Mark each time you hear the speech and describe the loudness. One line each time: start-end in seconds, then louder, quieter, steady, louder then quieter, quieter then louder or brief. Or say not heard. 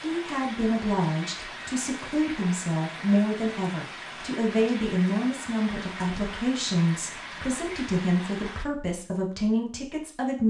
0.0-10.4 steady.